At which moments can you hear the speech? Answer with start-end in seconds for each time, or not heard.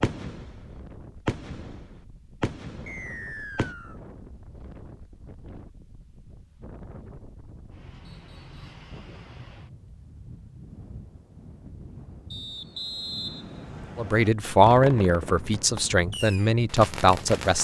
13.9-17.5.